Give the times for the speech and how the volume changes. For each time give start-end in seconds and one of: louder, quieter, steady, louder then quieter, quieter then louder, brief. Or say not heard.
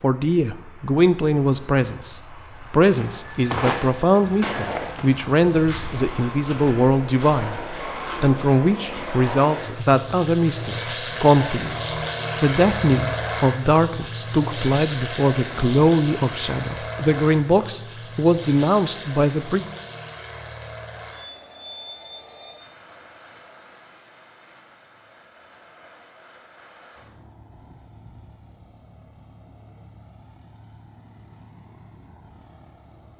0.0-7.6 steady
8.2-19.6 steady.